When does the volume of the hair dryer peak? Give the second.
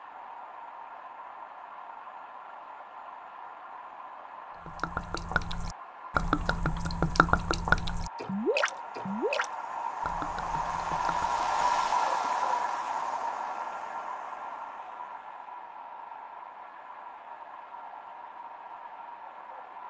12 s.